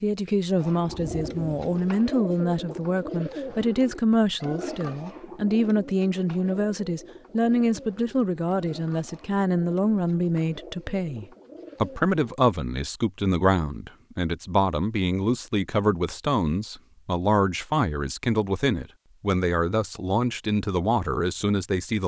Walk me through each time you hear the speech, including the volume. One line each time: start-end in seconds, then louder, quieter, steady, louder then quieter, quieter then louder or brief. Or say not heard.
0.0-22.0 steady.